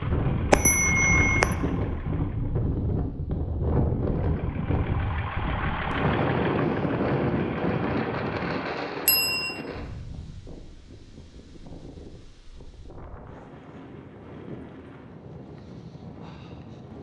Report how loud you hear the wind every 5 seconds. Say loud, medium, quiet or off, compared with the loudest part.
loud, loud, quiet, quiet.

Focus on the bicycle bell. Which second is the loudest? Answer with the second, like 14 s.
1 s.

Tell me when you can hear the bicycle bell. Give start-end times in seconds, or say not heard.
0.5-1.6, 9.1-9.6.